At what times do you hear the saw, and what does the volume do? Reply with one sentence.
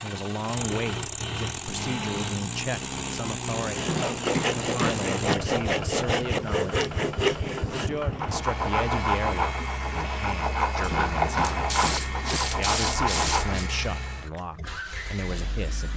You can hear the saw from 3.6 to 13.6 s, at a steady volume.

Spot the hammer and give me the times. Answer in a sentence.
You can hear the hammer from 3.9 to 5.3 s and from 10.9 to 12.4 s.